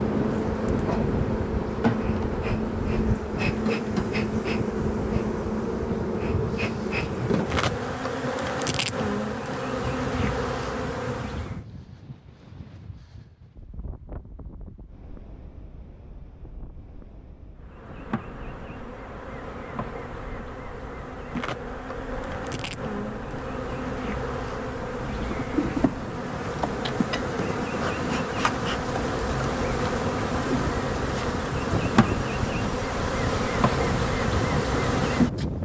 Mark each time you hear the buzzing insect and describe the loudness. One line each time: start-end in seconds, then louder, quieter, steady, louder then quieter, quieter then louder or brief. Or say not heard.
0.0-11.6 steady
17.6-35.5 louder.